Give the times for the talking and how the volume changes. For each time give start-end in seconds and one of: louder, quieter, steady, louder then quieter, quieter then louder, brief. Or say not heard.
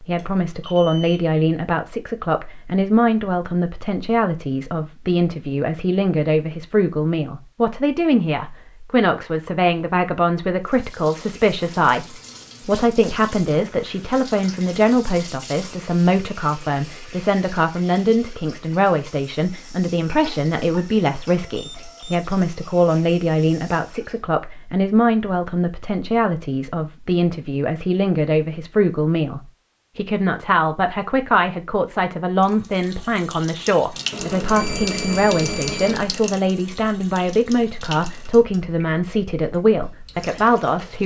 0.0-41.0 steady.